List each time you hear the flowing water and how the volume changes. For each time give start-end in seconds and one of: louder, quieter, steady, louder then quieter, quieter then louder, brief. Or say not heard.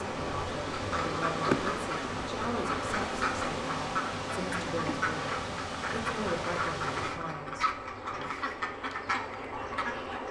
0.0-10.2 quieter.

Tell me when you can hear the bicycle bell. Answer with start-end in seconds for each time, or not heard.
not heard.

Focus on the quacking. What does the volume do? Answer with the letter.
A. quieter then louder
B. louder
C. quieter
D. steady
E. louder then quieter
D.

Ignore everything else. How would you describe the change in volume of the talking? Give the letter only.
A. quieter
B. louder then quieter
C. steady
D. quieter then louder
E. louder
C.